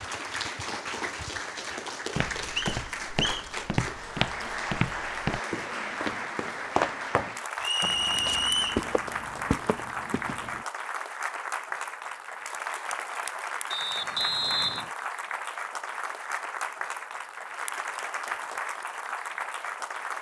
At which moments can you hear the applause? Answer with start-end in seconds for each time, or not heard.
0.0-20.1.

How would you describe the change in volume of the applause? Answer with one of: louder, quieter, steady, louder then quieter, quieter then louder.
steady.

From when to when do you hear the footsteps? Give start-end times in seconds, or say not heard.
2.1-10.7.